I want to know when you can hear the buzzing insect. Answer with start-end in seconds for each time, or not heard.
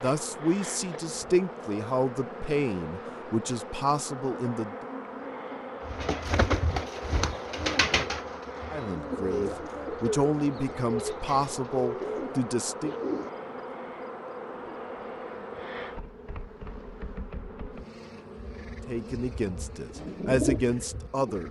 0.0-21.4.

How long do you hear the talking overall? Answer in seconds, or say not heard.
12 s.